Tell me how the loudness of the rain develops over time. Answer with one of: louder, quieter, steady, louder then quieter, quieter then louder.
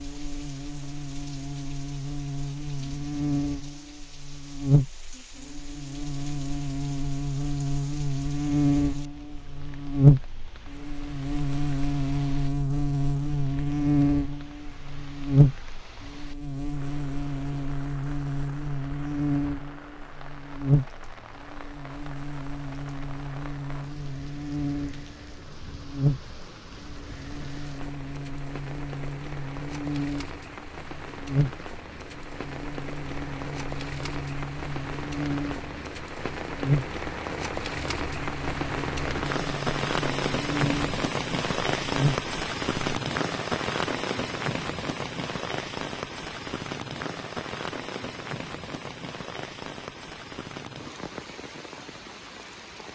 louder.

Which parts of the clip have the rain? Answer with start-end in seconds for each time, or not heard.
0.0-52.8.